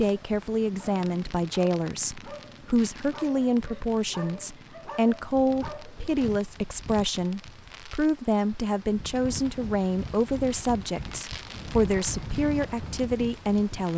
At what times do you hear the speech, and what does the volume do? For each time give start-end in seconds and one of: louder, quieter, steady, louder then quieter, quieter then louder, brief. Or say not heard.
0.0-13.9 steady.